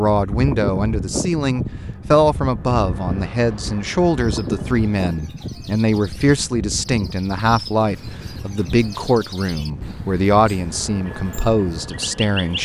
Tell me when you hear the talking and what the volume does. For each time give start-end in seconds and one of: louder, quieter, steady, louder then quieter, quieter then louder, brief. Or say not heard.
0.0-12.6 steady.